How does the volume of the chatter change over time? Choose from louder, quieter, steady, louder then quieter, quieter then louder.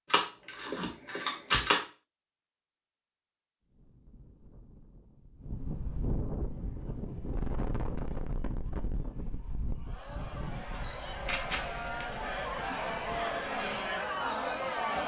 louder.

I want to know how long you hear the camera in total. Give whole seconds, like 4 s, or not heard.
4 s.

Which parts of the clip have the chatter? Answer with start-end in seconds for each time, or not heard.
6.3-15.0.